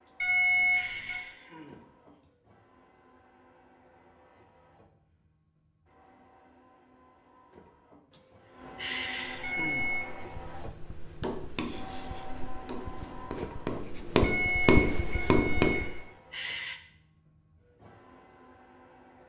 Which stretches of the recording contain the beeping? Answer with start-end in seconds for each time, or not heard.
0.2-1.2, 9.4-10.1, 14.2-16.0.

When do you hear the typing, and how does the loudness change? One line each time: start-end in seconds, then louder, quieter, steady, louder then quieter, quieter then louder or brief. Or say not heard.
not heard.